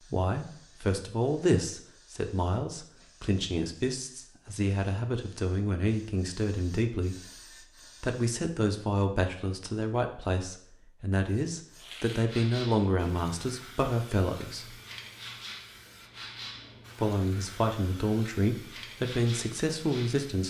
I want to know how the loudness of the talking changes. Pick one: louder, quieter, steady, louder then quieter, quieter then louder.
steady.